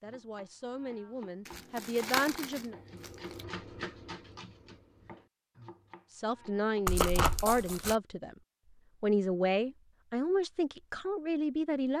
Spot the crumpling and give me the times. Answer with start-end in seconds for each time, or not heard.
1.4-3.5, 6.8-8.0.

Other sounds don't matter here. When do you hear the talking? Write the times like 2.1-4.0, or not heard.
0.0-2.8, 6.1-8.3, 9.0-11.9.